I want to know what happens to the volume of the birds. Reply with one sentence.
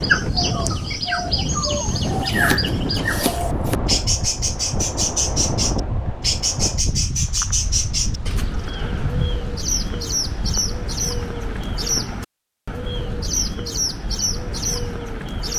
The volume of the birds stays about the same.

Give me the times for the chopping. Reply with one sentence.
You can hear the chopping from 2.2 to 3.8 s.